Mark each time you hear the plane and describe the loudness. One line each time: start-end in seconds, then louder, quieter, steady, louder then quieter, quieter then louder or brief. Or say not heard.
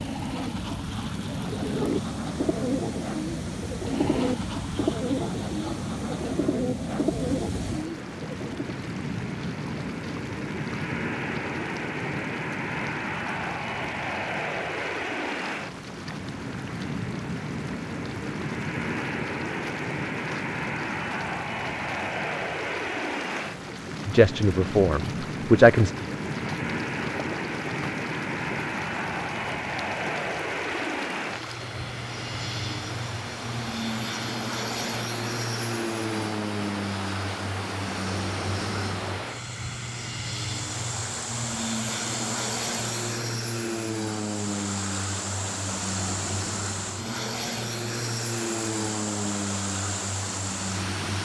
0.0-51.2 steady.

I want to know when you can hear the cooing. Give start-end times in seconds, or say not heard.
1.2-8.8.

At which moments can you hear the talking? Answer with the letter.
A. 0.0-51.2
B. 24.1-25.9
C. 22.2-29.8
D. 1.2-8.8
B.